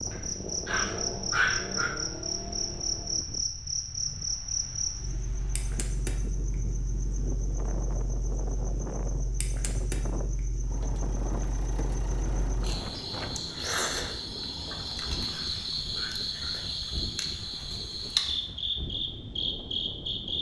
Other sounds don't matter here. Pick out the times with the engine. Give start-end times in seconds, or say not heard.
0.1-3.2, 10.7-15.3.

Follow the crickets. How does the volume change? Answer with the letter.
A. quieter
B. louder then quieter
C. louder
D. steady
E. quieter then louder
E.